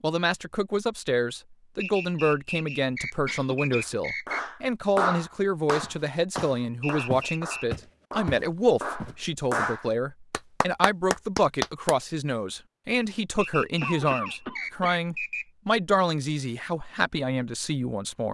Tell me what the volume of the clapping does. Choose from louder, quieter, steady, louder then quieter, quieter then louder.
quieter then louder.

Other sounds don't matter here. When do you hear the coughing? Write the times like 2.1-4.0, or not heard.
3.2-4.2, 13.8-14.9.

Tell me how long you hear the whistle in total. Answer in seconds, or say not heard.
6 s.